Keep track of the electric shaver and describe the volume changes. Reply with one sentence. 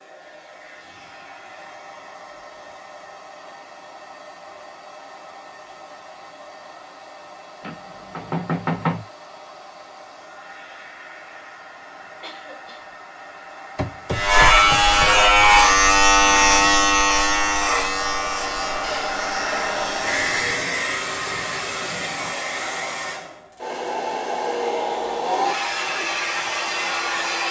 The loudness of the electric shaver goes down.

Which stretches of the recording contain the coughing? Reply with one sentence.
The coughing can be heard from 12.0 to 12.8 s.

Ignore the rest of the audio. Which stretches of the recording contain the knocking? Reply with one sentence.
The knocking can be heard from 7.6 to 9.1 s and from 13.8 to 15.1 s.